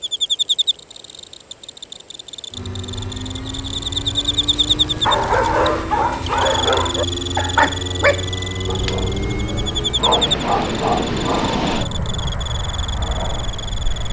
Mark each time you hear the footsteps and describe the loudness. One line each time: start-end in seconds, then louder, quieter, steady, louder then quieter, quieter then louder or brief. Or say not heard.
not heard.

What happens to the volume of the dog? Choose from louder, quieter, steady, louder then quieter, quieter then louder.
quieter then louder.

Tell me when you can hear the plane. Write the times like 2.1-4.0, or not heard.
2.5-14.0.